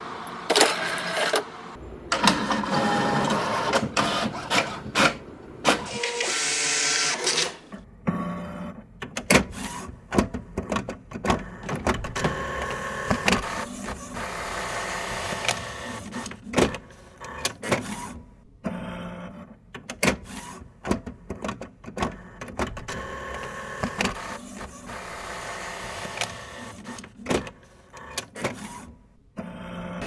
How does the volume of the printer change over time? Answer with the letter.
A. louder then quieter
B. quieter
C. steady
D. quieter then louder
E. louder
B.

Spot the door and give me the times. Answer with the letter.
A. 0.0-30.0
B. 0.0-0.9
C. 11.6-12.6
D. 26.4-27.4
C.